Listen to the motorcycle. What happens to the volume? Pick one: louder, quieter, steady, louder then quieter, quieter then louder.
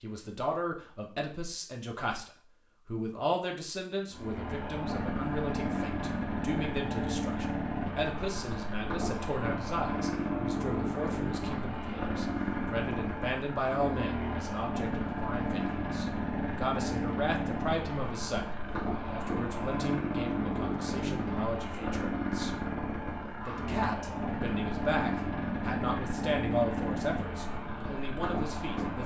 steady.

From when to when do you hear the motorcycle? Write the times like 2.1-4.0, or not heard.
4.1-29.0.